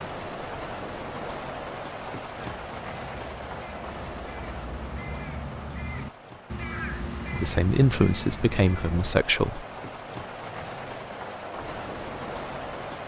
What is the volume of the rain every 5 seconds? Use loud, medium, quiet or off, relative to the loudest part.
loud, medium, loud.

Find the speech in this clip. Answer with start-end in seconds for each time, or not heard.
7.3-9.7.